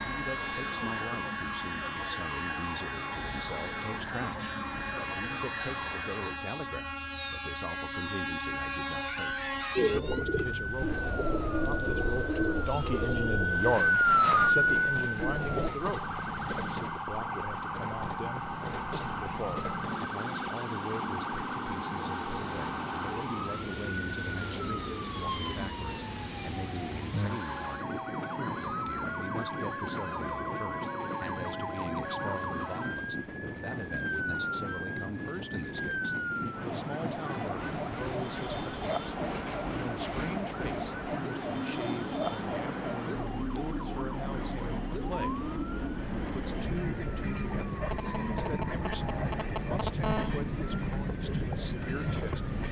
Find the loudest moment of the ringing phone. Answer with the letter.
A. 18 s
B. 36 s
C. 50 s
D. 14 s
C.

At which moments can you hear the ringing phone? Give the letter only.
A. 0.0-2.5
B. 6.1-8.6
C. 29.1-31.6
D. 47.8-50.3
D.